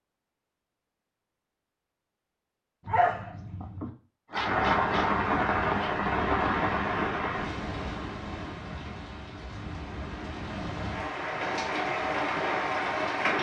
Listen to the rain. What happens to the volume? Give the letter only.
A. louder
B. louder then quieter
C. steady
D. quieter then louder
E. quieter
D.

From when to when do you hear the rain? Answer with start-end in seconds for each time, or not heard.
4.3-13.3.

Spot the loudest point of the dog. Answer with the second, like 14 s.
3 s.